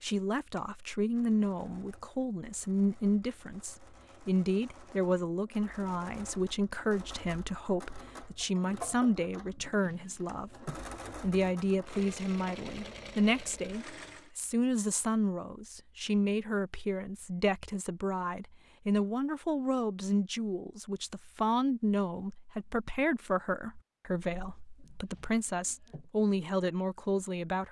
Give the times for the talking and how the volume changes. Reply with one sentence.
You can hear the talking from 0.0 to 27.6 s, at a steady volume.